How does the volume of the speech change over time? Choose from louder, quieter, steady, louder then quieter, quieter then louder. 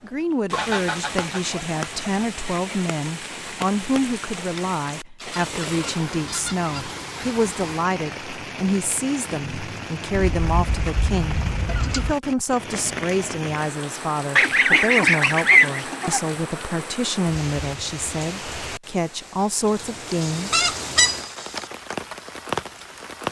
steady.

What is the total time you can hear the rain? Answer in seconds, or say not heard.
23 s.